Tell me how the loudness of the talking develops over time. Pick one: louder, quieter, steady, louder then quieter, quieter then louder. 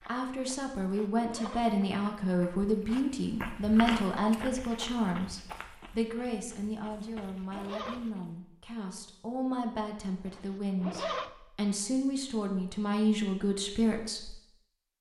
quieter then louder.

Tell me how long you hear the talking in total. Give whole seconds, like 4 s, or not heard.
14 s.